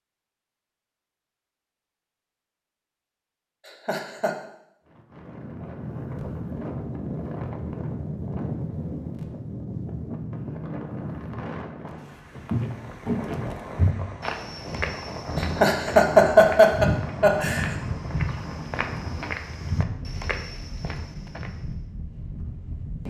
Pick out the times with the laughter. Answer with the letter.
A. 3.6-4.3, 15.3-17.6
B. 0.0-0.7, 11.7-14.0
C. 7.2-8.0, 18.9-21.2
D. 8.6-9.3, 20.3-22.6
A.